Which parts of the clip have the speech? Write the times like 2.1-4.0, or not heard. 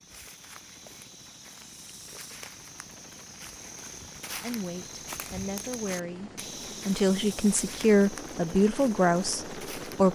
4.3-10.1.